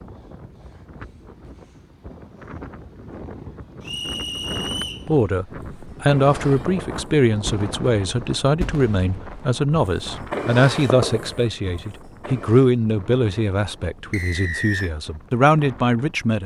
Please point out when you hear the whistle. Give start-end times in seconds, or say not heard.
3.8-5.0, 14.1-14.9.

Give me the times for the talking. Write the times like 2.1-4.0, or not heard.
5.0-16.4.